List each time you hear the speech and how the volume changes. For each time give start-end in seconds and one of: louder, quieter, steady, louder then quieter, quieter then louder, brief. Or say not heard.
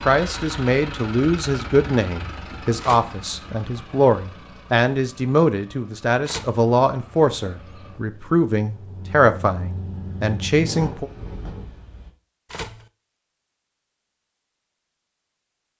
0.0-11.1 steady.